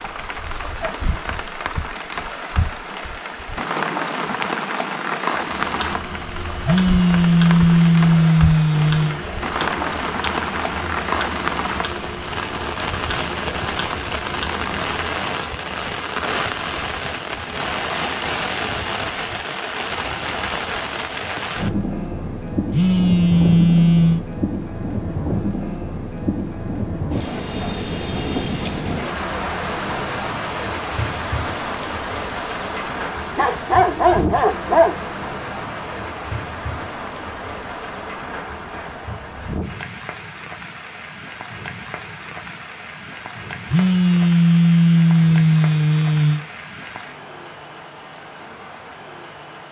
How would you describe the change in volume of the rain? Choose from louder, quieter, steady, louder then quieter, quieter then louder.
quieter.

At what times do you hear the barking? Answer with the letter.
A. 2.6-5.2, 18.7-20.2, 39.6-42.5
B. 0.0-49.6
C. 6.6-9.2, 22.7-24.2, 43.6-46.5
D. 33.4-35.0
D.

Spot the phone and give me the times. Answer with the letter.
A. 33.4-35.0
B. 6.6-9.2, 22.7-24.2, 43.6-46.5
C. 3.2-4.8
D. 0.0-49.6
B.